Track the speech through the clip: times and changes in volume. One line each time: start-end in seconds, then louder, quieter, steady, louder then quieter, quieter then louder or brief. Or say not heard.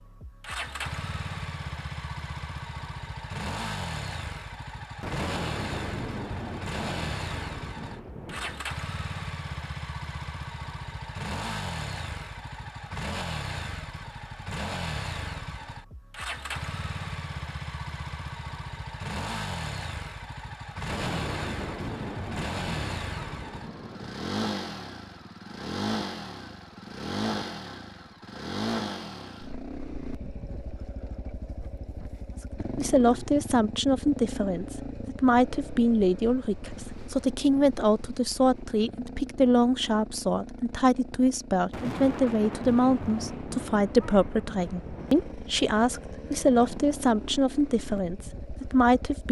32.8-49.2 steady.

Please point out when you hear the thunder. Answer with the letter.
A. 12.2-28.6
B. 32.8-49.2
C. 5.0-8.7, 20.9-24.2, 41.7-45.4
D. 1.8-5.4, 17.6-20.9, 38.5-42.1
C.